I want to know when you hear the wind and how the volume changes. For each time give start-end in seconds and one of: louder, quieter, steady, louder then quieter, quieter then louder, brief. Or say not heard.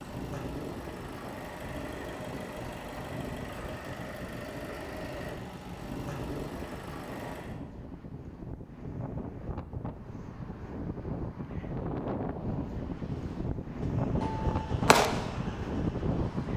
0.0-16.5 louder.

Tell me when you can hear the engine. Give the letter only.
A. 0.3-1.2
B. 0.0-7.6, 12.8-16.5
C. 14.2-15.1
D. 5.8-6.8
B.